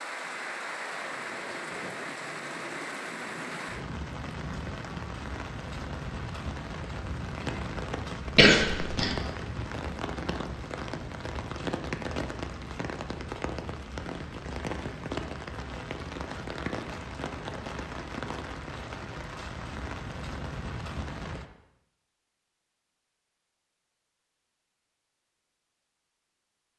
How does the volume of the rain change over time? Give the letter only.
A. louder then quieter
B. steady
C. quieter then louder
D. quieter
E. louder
B.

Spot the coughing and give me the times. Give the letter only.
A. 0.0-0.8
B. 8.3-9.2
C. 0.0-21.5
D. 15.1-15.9
B.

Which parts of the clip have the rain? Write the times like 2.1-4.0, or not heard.
0.0-21.5.